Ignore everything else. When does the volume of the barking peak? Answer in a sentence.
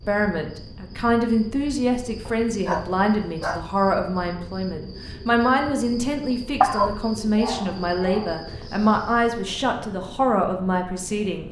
The loudest moment of the barking is at 7 seconds.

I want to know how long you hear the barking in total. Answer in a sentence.
You can hear the barking for 3 seconds altogether.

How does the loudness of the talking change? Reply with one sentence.
The volume of the talking stays about the same.